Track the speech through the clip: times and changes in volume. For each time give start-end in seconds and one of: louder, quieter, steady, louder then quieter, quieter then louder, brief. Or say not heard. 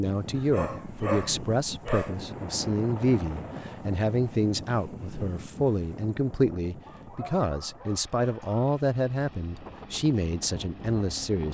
0.0-11.4 steady.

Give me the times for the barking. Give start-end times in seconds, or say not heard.
0.3-2.1, 6.8-8.7.